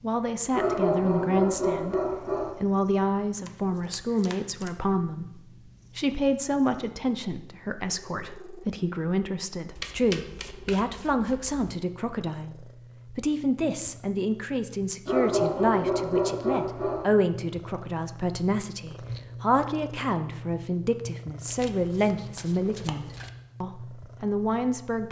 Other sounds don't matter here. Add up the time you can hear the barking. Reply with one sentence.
The barking can be heard for 4 seconds in total.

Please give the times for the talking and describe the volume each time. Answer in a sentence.
You can hear the talking briefly from 0.0 to 1.9 s; and from 2.5 to 25.0 s, at a steady volume.